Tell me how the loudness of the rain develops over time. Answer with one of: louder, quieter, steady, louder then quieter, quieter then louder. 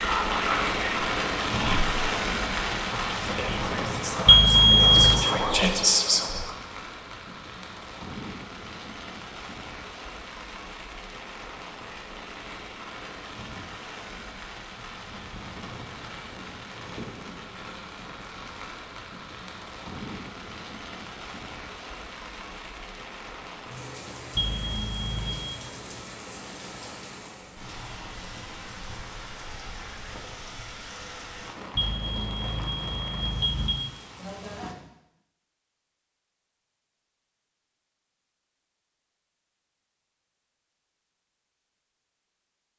quieter.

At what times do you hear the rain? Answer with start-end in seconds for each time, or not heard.
0.0-34.8.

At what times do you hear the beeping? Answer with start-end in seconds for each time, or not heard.
4.2-5.2, 24.4-25.6, 31.8-33.8.